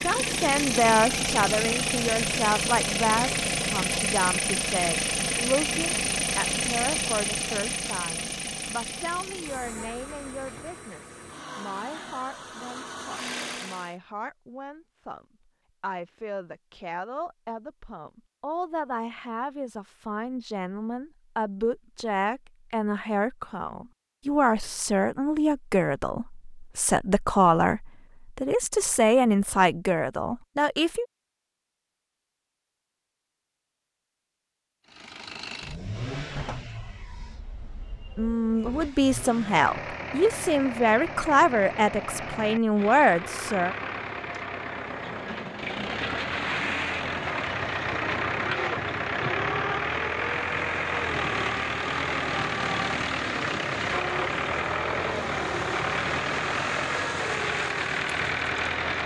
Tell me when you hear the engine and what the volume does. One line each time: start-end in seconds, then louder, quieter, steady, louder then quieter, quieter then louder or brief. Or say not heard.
0.0-13.9 quieter
34.9-59.0 louder.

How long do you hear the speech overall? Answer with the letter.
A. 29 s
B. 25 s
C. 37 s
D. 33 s
C.